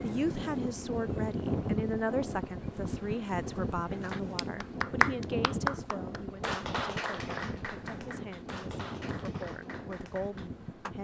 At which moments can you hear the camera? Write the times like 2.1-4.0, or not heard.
not heard.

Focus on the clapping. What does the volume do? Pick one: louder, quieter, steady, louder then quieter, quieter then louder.
quieter.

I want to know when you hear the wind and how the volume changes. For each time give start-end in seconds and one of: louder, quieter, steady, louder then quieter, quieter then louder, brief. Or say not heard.
0.0-10.9 quieter.